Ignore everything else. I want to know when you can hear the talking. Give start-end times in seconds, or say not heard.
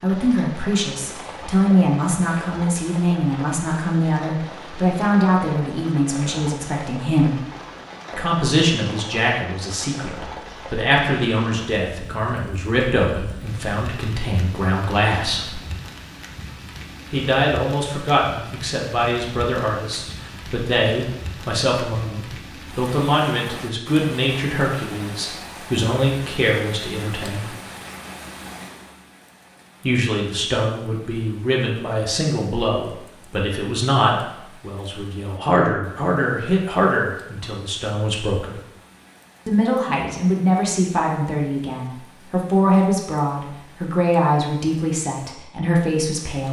0.0-7.4, 8.1-15.6, 17.1-27.5, 29.8-38.5, 39.5-46.4.